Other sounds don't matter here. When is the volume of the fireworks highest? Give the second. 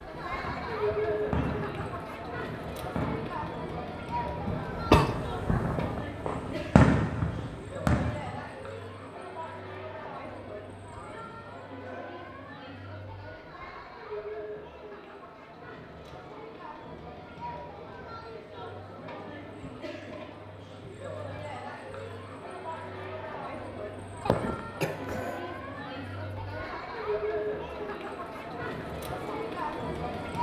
7 s.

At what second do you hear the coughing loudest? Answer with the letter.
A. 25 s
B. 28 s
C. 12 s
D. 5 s
D.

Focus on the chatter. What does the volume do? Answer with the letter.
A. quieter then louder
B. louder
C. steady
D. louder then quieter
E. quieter
A.